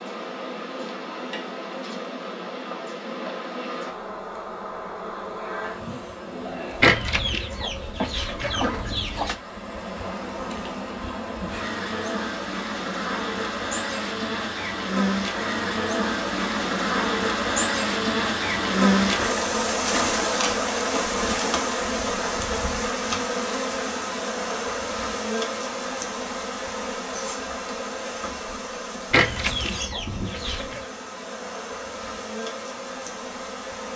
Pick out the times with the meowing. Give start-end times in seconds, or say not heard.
not heard.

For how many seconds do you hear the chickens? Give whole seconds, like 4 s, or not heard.
4 s.